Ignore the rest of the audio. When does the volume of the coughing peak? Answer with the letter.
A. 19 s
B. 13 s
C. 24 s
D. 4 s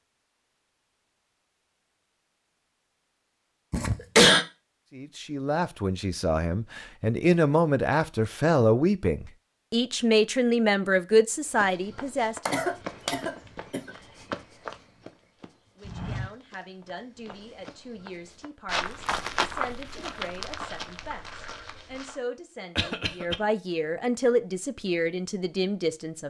D.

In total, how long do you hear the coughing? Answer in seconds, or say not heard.
3 s.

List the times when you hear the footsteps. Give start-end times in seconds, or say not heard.
11.4-22.2.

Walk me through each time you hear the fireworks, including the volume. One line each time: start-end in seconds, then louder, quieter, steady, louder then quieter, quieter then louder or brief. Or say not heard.
not heard.